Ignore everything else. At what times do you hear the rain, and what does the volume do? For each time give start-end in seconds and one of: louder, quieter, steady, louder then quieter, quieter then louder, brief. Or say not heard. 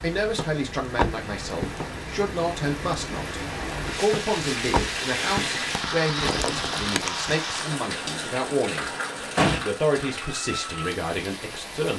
0.0-11.9 louder then quieter.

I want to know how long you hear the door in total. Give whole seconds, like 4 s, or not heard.
4 s.